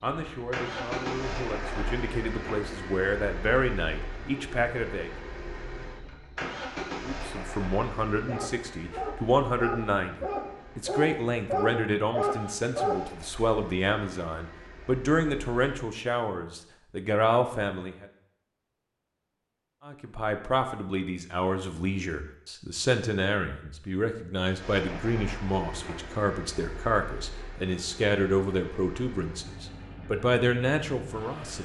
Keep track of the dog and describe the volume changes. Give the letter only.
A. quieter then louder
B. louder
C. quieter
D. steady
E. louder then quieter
B.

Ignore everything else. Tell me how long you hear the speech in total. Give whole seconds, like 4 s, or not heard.
28 s.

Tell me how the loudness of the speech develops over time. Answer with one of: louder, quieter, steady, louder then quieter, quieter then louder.
steady.